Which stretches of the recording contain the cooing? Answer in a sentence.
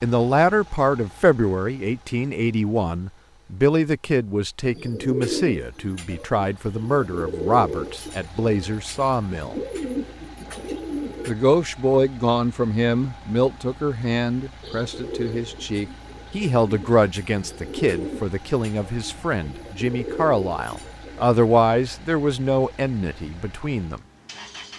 You can hear the cooing from 4.7 to 11.3 s and from 14.6 to 21.3 s.